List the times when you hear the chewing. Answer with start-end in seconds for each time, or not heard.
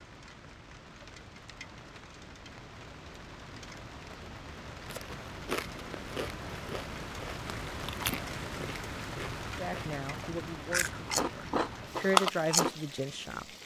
4.9-12.7.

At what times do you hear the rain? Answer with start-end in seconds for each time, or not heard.
0.0-13.6.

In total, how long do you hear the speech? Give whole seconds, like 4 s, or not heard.
4 s.